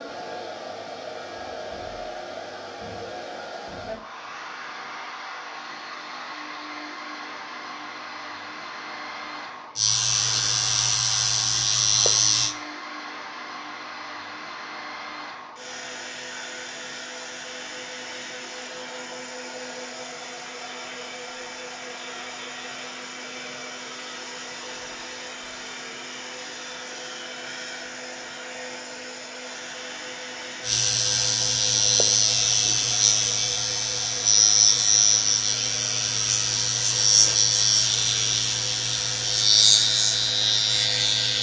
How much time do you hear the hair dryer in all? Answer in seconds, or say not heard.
41 s.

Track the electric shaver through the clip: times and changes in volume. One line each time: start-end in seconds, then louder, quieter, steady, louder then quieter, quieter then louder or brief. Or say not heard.
9.8-12.6 brief
30.6-41.3 steady.